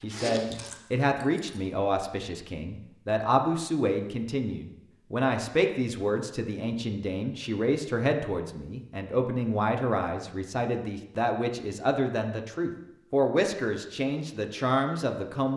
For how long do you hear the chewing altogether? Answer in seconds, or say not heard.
2 s.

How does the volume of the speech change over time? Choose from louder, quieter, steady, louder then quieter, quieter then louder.
steady.